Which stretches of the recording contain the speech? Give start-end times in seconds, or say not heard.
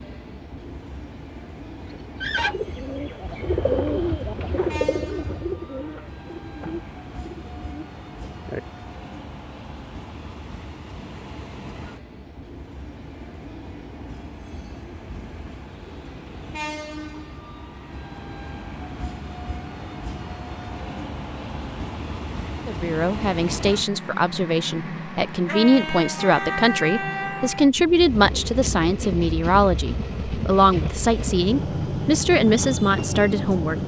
22.6-33.8.